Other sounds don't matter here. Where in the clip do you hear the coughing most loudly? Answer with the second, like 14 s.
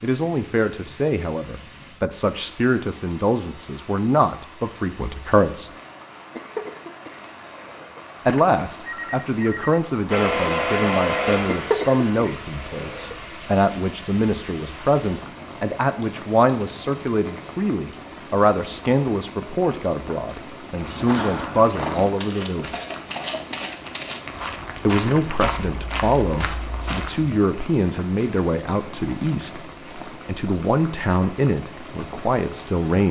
12 s.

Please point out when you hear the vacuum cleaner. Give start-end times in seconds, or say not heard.
10.1-12.2.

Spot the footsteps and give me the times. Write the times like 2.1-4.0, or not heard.
20.7-27.3.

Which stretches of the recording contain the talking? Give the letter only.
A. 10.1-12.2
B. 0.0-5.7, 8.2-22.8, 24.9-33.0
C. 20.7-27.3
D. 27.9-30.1
B.